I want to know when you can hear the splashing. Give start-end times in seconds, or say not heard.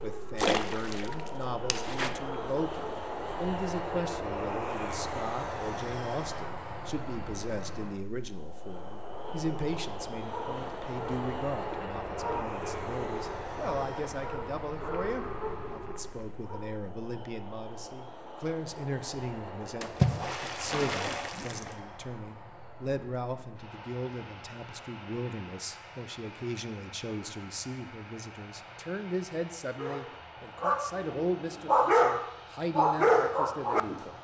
0.3-2.1, 19.8-21.8.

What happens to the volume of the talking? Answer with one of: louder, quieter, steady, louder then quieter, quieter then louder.
steady.